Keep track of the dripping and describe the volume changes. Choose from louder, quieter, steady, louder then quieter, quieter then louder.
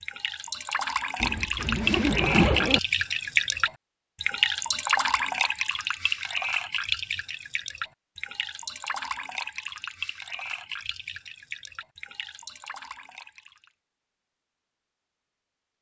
quieter.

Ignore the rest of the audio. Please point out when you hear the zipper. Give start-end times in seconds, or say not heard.
1.2-2.8.